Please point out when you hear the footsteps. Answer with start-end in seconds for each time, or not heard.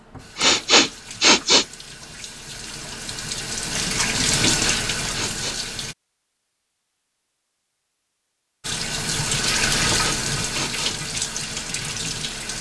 not heard.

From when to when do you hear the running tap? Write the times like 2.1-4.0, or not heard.
0.0-6.0, 8.6-12.5.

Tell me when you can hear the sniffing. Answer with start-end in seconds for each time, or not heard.
0.3-1.6, 4.5-5.6, 9.9-10.9.